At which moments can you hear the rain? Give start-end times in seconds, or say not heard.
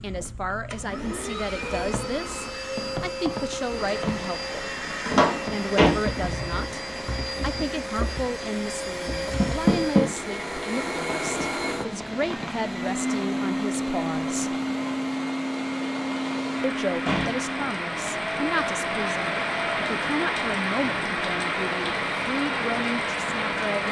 3.6-23.8.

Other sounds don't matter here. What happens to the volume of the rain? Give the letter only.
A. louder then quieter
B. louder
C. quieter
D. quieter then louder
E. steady
B.